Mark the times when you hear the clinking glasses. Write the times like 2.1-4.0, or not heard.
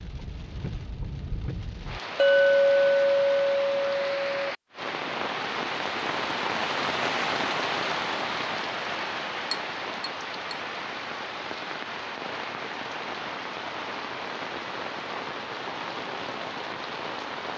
2.1-4.5, 9.5-10.6.